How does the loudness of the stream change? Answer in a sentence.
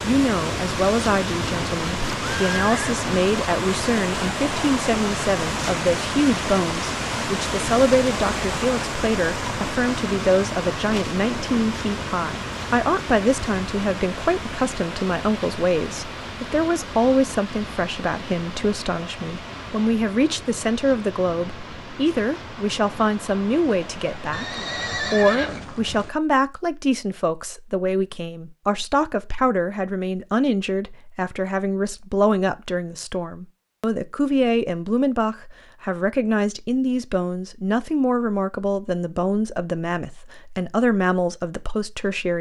The loudness of the stream goes down.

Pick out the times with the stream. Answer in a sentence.
You can hear the stream from 0.0 to 25.0 s.